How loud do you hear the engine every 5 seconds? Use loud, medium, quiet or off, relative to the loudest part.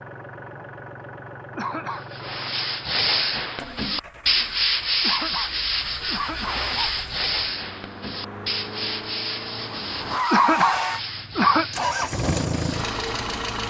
quiet, quiet, loud.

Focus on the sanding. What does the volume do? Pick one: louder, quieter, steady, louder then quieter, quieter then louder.
quieter.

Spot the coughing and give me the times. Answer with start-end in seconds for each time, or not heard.
1.6-2.0, 5.0-7.0, 10.3-11.7.